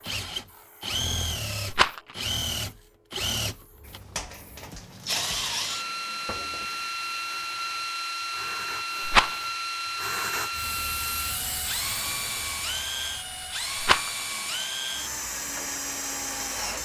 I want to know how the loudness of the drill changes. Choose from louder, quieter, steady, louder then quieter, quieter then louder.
steady.